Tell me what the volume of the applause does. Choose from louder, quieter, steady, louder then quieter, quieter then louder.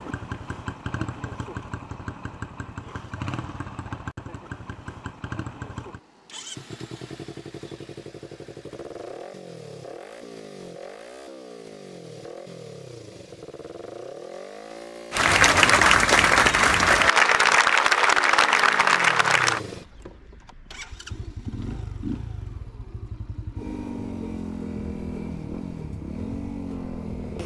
steady.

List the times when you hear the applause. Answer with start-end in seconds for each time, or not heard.
15.1-19.6.